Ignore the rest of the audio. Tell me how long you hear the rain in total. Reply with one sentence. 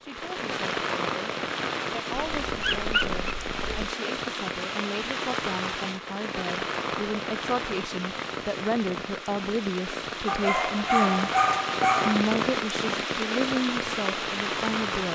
You can hear the rain for 15 seconds altogether.